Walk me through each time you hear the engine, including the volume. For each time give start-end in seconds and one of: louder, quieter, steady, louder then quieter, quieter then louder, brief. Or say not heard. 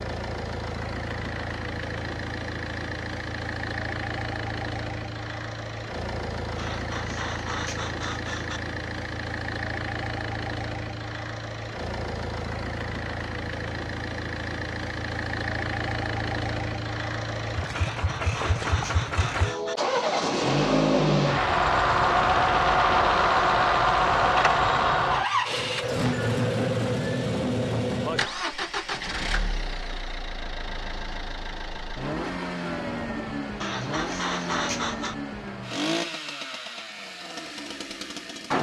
0.0-38.5 louder then quieter.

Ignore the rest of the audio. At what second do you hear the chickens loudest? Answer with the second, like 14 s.
35 s.